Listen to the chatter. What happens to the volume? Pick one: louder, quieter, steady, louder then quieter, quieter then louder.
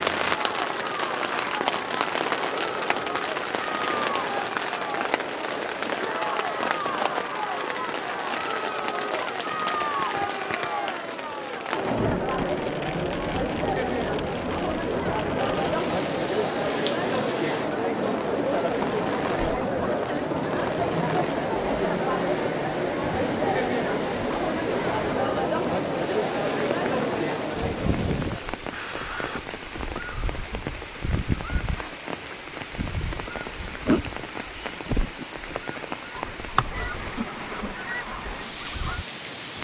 louder.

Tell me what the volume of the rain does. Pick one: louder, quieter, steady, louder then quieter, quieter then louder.
quieter.